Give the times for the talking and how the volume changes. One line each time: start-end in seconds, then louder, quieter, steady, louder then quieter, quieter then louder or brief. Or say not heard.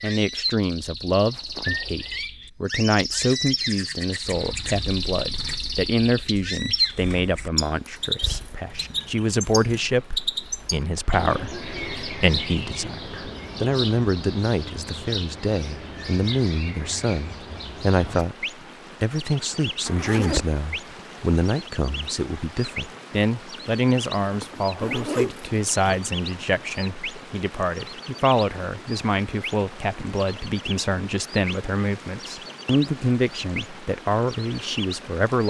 0.0-35.4 steady.